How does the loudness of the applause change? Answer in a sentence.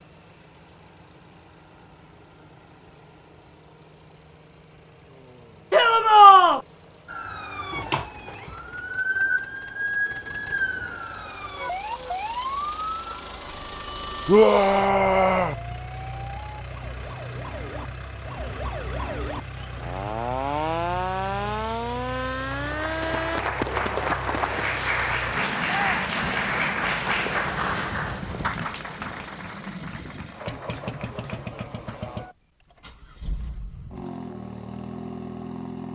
The volume of the applause goes down.